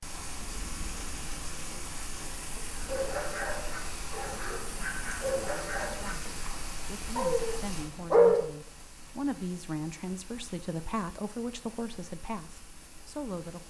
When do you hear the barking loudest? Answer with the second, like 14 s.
8 s.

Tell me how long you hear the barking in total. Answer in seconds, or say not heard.
6 s.